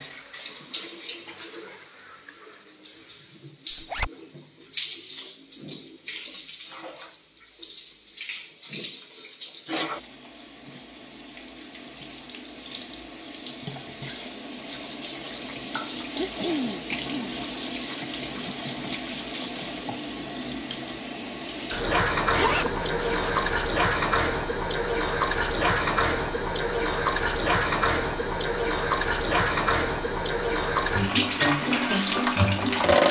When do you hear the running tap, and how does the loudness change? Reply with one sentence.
You can hear the running tap from 0.0 to 33.0 s, getting louder.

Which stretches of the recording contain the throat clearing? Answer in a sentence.
You can hear the throat clearing from 15.9 to 17.4 s.